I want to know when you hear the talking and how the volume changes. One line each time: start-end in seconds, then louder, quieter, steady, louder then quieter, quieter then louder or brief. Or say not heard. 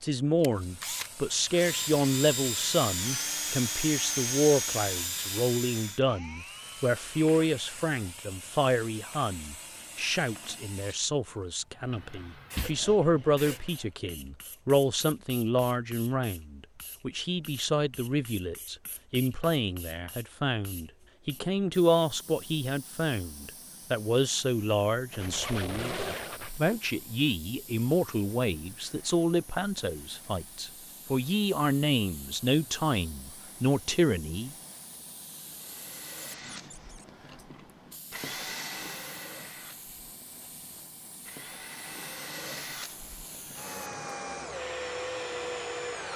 0.0-34.5 steady.